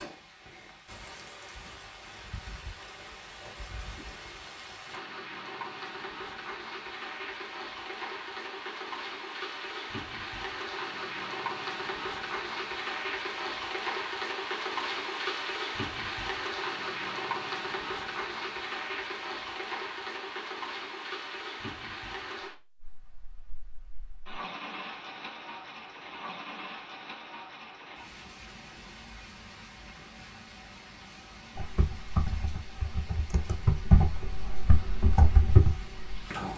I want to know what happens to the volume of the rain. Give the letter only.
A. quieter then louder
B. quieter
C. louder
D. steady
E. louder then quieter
E.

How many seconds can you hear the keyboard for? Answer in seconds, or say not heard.
5 s.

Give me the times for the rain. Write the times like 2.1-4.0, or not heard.
0.0-36.5.